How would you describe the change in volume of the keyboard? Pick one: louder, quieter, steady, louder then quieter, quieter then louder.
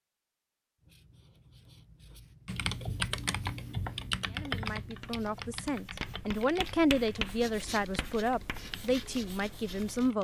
quieter.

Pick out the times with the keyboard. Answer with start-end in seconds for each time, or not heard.
2.5-10.1.